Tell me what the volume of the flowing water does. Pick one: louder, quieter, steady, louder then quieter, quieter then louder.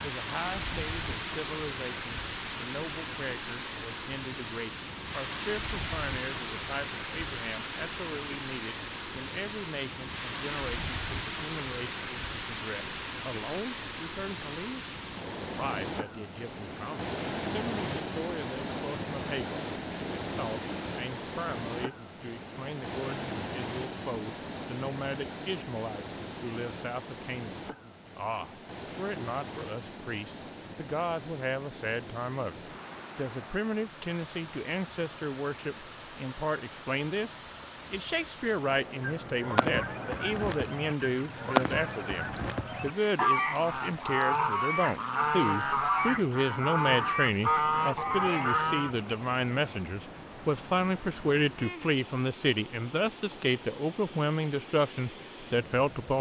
quieter.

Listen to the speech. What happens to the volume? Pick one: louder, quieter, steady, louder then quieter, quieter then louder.
louder.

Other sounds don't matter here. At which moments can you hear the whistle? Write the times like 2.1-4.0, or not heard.
not heard.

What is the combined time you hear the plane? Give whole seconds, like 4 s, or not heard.
not heard.